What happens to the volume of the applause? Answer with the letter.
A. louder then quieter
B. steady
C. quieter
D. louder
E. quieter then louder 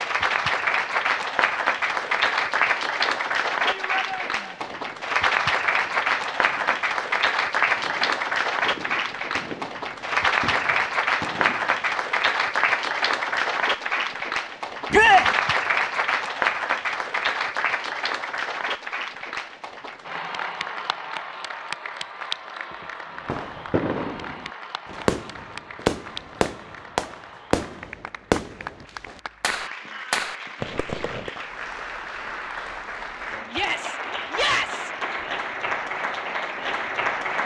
E.